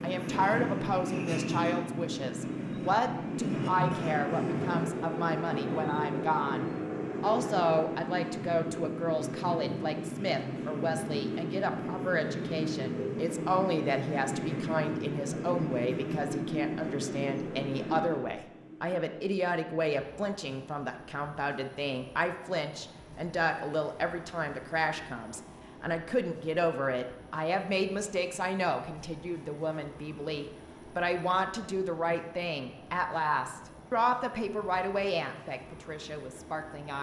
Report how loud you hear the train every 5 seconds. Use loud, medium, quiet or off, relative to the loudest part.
loud, loud, loud, loud, quiet, quiet, quiet, quiet.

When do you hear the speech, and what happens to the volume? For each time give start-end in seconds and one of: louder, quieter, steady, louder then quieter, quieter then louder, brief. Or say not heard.
0.0-36.9 steady.